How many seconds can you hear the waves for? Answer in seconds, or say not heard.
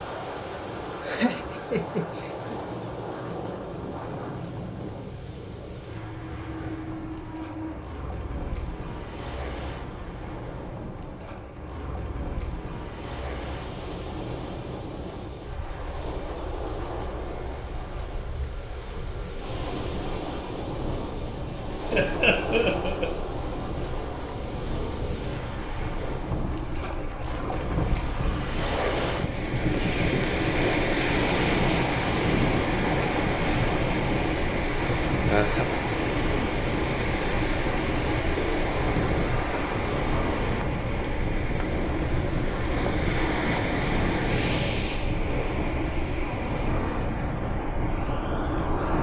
49 s.